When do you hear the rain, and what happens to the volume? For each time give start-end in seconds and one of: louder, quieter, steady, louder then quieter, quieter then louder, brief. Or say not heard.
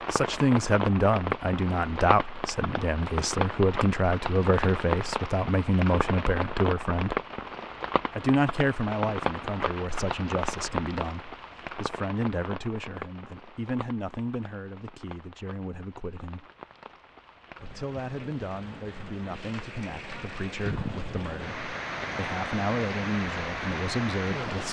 0.0-24.6 quieter then louder.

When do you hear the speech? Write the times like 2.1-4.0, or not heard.
0.1-7.2, 8.1-16.4, 17.6-24.6.